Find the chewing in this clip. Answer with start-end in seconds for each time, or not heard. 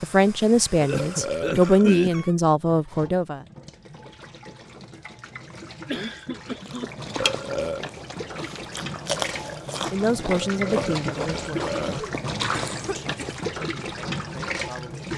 6.7-13.3.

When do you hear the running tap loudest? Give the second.
12 s.